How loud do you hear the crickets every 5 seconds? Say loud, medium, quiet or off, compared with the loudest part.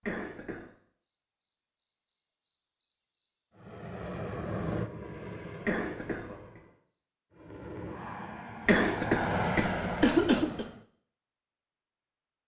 loud, medium, off.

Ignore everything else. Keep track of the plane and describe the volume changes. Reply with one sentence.
The volume of the plane goes down, then up.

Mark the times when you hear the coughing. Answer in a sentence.
The coughing can be heard from 0.0 to 0.7 s, from 5.7 to 6.6 s and from 8.7 to 10.7 s.